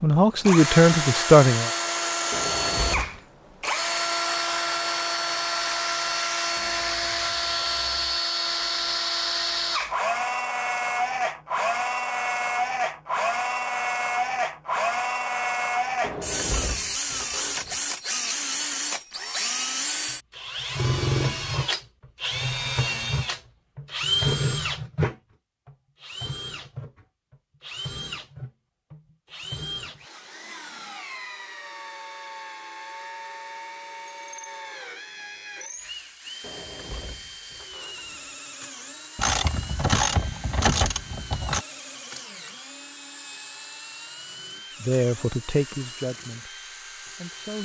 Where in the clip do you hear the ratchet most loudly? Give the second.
40 s.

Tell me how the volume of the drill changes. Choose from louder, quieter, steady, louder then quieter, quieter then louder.
quieter.